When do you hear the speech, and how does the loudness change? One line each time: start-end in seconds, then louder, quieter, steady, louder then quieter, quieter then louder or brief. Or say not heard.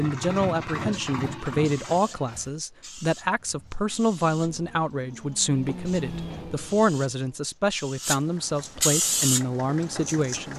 0.0-10.5 steady.